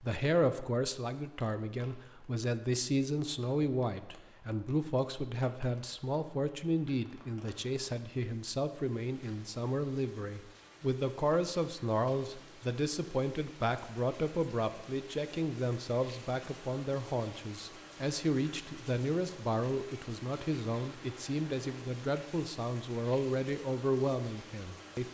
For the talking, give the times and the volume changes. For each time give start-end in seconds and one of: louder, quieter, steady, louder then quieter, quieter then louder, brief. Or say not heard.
0.0-25.1 steady.